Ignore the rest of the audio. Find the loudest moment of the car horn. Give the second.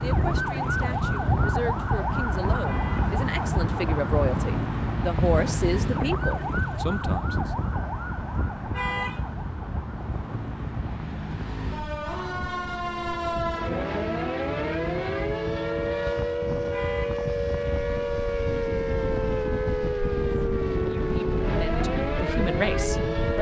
9 s.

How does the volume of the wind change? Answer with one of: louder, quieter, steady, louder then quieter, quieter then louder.
quieter then louder.